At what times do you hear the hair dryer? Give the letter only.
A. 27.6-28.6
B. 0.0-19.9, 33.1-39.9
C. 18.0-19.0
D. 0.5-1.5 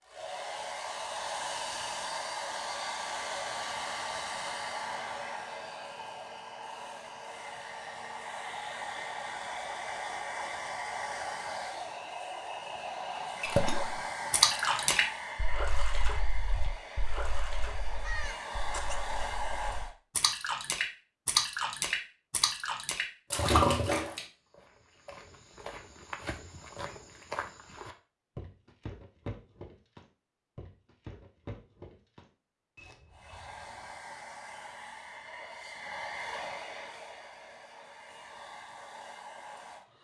B.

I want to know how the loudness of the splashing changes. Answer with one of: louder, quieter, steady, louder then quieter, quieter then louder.
quieter then louder.